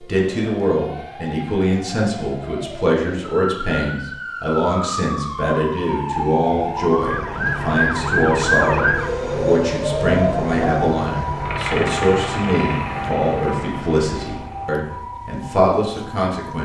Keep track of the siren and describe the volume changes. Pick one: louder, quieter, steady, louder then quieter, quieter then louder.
louder then quieter.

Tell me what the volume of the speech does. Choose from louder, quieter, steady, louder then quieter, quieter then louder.
steady.